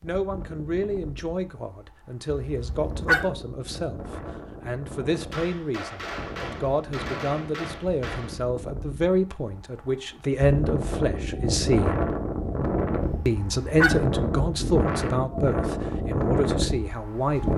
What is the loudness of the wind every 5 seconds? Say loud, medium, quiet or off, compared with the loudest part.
quiet, quiet, loud, loud.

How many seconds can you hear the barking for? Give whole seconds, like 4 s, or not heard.
2 s.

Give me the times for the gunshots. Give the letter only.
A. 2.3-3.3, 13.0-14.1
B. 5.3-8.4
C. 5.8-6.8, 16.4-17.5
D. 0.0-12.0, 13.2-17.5
B.